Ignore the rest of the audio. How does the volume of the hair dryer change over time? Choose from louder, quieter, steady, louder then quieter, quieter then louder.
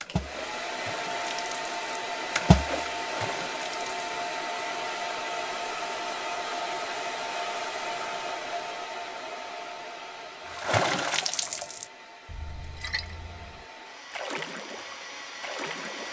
quieter.